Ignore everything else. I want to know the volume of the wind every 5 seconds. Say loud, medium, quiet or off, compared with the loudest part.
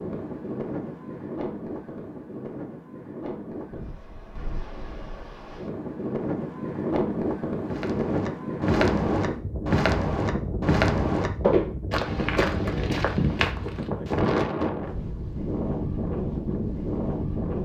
medium, loud, loud, loud.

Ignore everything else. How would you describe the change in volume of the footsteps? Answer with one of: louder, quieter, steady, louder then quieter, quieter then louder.
steady.